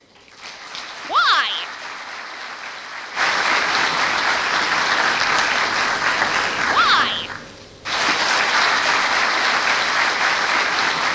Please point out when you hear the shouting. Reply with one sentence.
You can hear the shouting from 1.1 to 1.6 s and from 6.7 to 7.3 s.